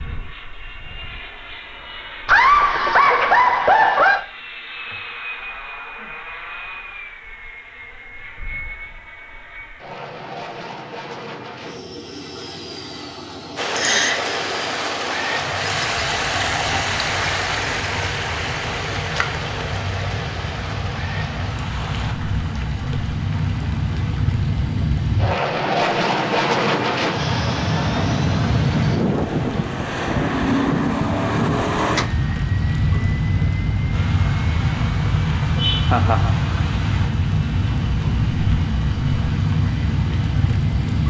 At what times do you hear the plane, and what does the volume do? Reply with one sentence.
The plane can be heard from 0.0 to 41.0 s, getting louder.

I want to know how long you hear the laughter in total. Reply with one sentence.
You can hear the laughter for 3 seconds altogether.